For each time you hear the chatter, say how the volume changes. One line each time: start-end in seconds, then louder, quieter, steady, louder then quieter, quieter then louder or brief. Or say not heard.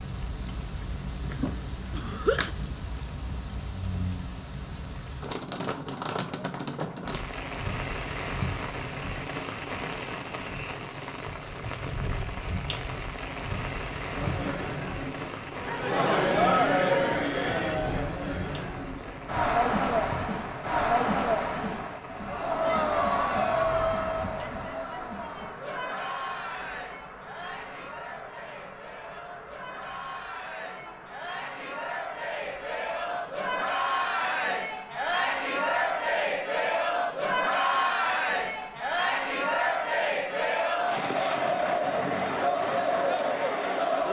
14.2-44.0 quieter then louder.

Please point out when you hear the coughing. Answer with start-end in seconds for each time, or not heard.
1.3-2.5.